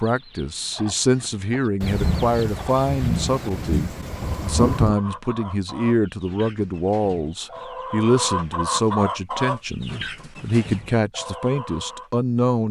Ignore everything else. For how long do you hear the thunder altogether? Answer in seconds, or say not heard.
3 s.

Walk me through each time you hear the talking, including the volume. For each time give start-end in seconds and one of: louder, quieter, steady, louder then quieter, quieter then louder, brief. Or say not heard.
0.0-12.6 steady.